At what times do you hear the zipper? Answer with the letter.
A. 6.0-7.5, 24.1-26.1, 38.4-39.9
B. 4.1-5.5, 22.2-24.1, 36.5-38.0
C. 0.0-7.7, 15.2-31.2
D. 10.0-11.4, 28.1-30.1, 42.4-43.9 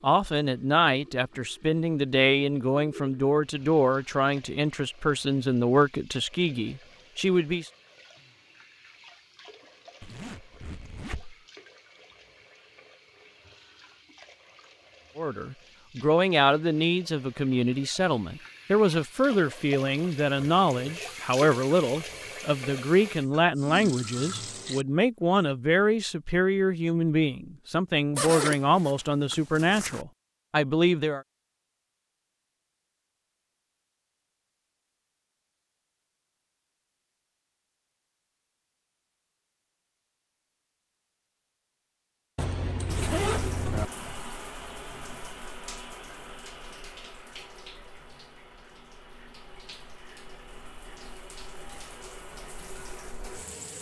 D.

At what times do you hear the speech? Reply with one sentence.
The speech can be heard from 0.0 to 7.7 s and from 15.2 to 31.2 s.